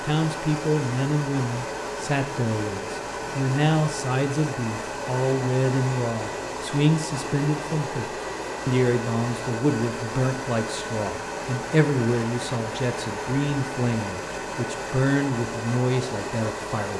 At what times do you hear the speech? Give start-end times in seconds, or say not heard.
0.0-16.9.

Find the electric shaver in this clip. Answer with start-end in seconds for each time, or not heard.
not heard.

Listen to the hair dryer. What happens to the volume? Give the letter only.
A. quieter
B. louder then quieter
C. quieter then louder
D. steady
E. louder
D.